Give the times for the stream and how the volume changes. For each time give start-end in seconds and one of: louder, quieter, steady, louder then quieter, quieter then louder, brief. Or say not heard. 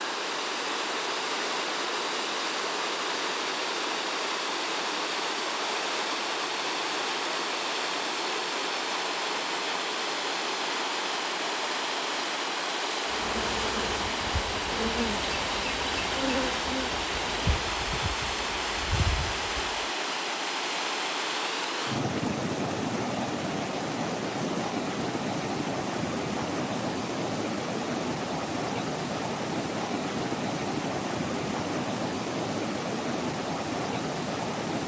0.0-34.8 steady.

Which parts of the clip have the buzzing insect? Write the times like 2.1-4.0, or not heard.
13.1-19.9.